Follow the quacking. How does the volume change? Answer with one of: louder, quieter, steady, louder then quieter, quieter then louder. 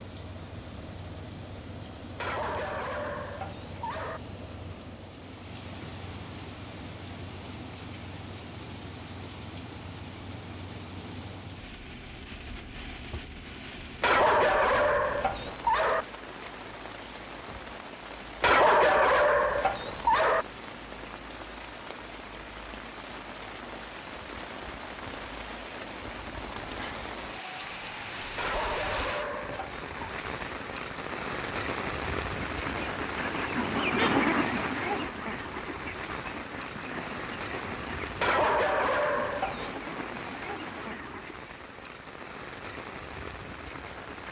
quieter.